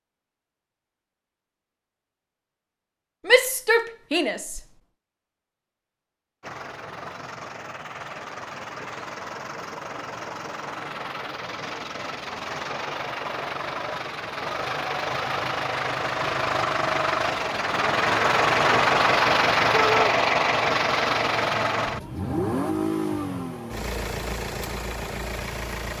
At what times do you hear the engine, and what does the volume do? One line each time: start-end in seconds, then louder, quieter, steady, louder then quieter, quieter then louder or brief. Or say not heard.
6.4-25.9 louder then quieter.